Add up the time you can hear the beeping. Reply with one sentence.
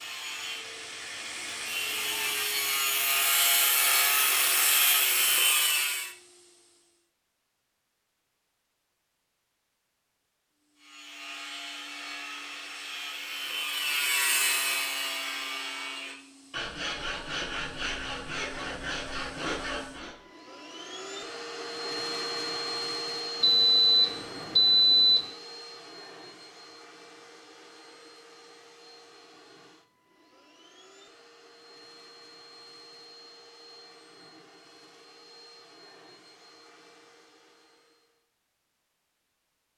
You can hear the beeping for 2 seconds altogether.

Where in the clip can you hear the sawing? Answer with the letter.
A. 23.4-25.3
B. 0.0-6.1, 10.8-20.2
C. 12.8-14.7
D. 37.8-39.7
B.